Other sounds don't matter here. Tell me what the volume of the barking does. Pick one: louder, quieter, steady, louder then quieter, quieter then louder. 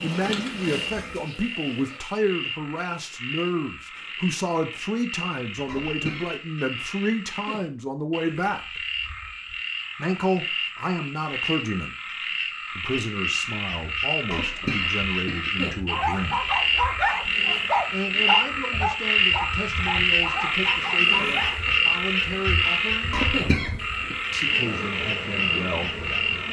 quieter.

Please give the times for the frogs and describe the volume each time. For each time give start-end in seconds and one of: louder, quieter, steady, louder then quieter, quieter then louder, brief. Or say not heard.
0.0-26.4 louder.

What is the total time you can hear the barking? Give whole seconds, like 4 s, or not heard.
6 s.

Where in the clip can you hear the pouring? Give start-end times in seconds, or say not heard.
not heard.